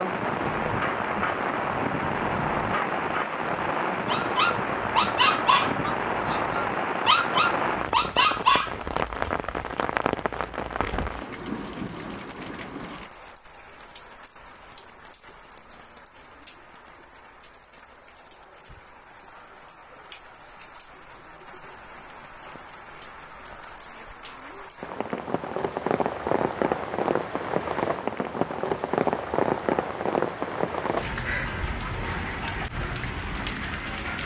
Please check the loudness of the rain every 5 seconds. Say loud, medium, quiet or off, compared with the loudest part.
loud, loud, medium, quiet, quiet, loud, loud.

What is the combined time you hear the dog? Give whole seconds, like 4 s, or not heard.
8 s.